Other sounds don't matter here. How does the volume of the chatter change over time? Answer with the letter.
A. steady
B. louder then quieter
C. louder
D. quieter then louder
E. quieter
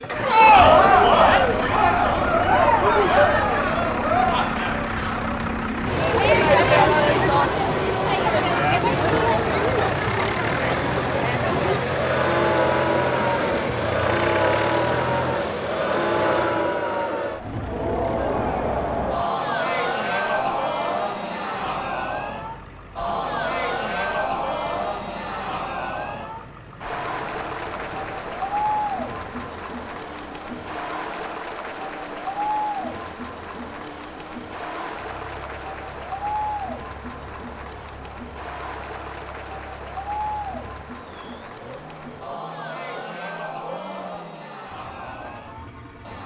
E.